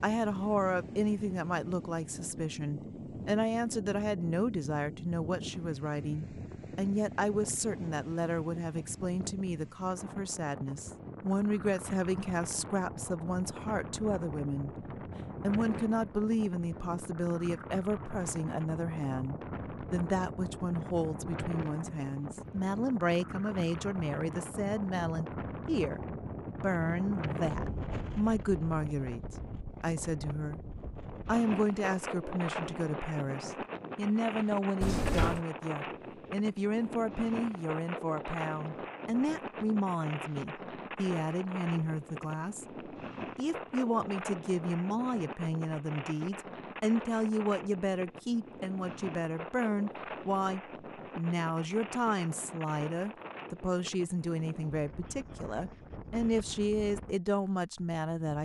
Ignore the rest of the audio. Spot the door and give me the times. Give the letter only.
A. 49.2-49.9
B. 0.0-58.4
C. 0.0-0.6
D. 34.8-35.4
D.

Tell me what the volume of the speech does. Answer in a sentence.
The loudness of the speech stays about the same.